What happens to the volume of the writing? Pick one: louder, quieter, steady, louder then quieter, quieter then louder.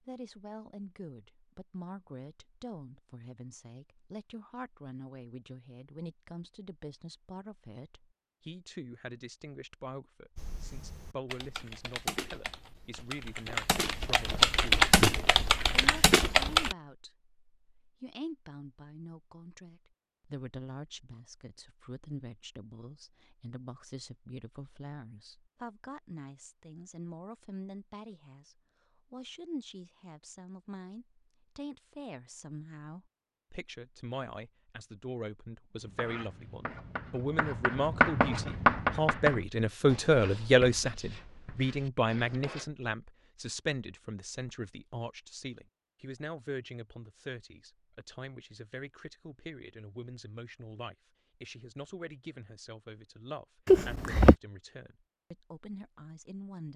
louder then quieter.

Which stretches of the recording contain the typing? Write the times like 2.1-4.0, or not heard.
10.3-16.8.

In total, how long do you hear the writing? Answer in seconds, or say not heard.
7 s.